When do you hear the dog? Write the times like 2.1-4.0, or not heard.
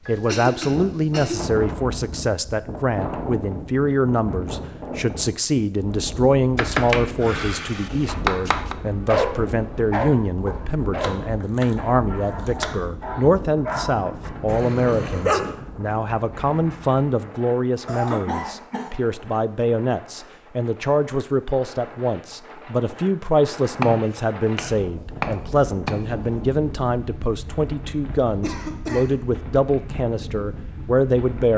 8.8-15.6.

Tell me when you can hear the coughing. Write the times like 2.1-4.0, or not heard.
0.1-1.4, 17.9-19.0, 28.4-29.1.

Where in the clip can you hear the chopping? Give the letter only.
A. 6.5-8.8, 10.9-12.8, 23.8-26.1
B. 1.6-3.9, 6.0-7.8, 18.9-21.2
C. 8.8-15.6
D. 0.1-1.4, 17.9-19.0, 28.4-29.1
A.